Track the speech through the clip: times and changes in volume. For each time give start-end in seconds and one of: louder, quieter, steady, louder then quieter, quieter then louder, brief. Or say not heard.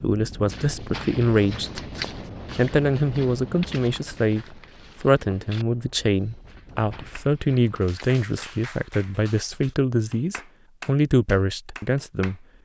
0.0-1.9 brief
2.5-12.4 steady.